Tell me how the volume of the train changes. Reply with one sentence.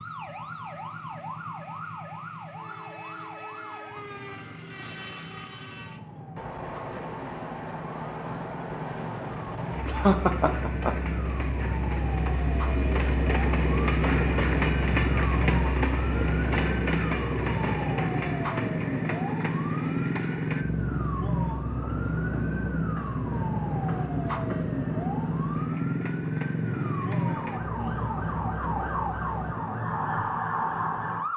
The loudness of the train goes up, then down.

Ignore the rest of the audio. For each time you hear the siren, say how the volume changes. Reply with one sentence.
You can hear the siren from 0.0 to 31.3 s, getting louder.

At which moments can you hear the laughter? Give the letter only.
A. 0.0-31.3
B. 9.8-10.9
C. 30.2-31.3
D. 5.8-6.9
B.